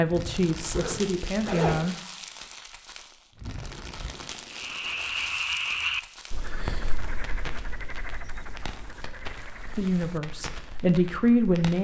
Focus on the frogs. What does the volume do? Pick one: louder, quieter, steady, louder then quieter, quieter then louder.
quieter.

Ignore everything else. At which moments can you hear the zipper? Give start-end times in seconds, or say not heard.
0.7-1.8.